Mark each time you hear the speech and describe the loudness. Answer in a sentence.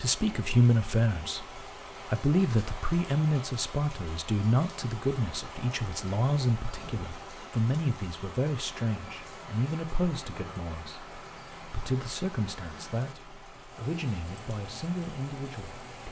The speech can be heard from 0.0 to 16.0 s, getting quieter.